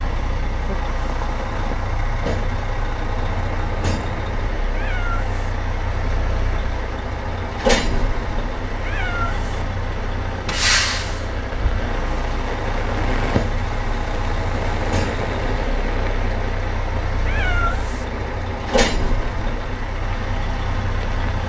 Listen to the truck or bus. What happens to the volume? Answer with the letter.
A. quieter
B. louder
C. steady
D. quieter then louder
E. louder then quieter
C.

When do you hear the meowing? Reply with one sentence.
The meowing can be heard from 4.7 to 5.5 s, from 8.8 to 9.7 s and from 17.2 to 18.1 s.